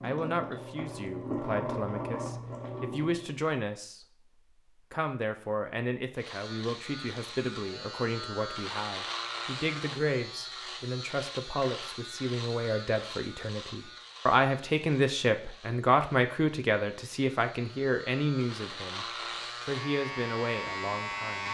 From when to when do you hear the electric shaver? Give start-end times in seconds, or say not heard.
6.2-21.4.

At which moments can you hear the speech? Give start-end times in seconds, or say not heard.
0.0-4.0, 4.9-19.1, 19.6-21.4.